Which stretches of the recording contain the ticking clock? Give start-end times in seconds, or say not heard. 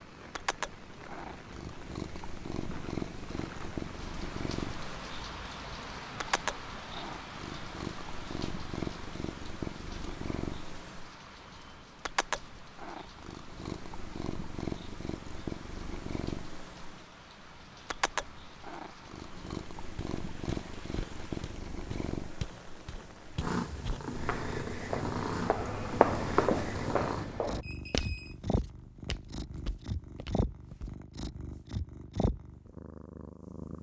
not heard.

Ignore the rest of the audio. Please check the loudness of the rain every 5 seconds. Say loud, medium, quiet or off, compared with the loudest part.
loud, loud, medium, medium, medium, off, off.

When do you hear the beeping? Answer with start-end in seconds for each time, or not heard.
27.6-28.4.